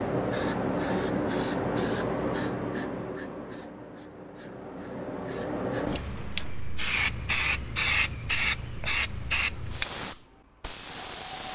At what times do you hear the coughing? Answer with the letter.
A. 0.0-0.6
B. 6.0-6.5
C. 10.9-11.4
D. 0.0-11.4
B.